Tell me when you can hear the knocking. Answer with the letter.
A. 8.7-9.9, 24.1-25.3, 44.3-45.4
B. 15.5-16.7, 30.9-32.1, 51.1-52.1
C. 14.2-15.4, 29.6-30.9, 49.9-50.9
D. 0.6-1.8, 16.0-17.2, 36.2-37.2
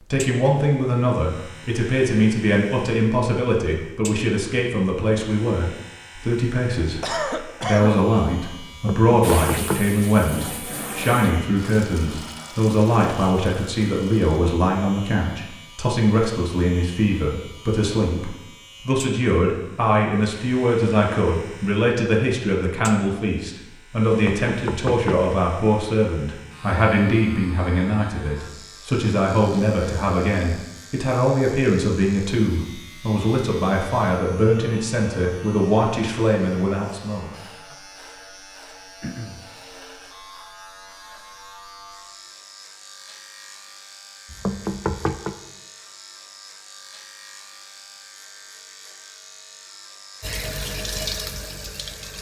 A.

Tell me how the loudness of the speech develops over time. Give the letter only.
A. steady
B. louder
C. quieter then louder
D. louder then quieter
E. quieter
A.